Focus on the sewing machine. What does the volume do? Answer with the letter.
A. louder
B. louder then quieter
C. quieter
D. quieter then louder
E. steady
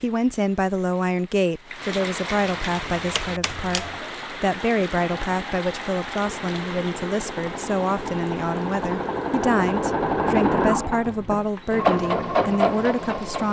A.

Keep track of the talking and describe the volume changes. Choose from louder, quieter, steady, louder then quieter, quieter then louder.
steady.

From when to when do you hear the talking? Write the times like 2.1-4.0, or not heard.
0.0-13.4.